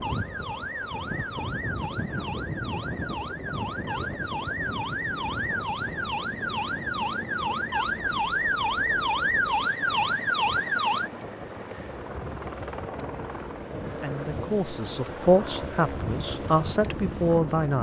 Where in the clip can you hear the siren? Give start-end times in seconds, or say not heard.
0.0-11.1.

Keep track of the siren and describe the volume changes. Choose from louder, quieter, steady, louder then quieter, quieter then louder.
louder.